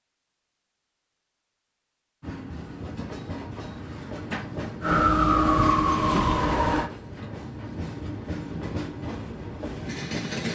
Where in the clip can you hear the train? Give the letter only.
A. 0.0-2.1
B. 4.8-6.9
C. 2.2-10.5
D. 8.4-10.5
C.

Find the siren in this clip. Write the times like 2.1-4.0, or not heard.
4.8-6.9.